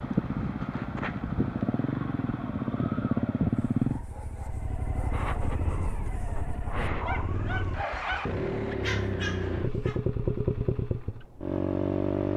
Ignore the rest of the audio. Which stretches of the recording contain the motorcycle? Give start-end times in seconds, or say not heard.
0.0-12.3.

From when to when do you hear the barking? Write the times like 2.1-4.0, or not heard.
3.5-10.0.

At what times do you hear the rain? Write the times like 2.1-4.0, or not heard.
not heard.